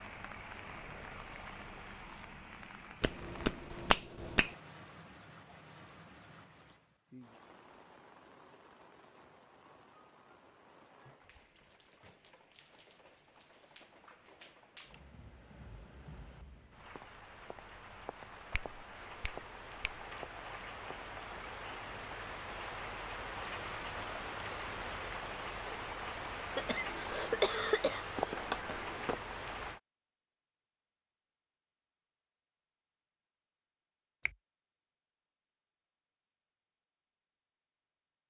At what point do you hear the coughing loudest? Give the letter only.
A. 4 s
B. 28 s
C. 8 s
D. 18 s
B.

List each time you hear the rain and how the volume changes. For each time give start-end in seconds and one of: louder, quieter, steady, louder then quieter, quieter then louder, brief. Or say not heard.
0.0-29.8 quieter then louder.